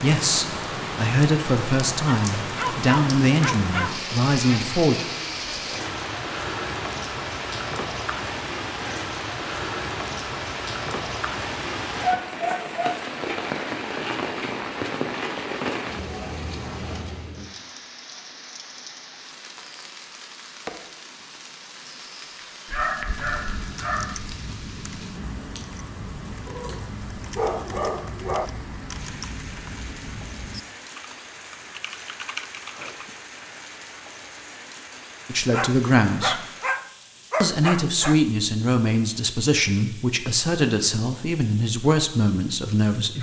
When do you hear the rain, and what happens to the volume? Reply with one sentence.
You can hear the rain from 0.0 to 43.1 s, getting quieter.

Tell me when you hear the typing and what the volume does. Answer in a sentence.
The typing can be heard from 23.1 to 33.2 s, at a steady volume.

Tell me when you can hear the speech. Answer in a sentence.
The speech can be heard from 0.0 to 5.0 s, from 35.2 to 36.5 s and from 37.4 to 43.1 s.